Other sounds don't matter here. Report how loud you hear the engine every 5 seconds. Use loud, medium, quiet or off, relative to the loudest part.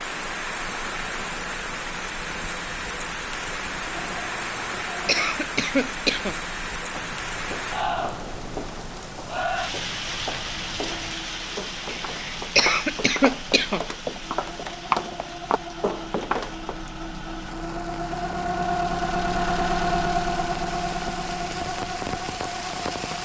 quiet, quiet, quiet, loud, loud.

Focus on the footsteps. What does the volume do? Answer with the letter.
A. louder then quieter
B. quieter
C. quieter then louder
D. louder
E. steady
D.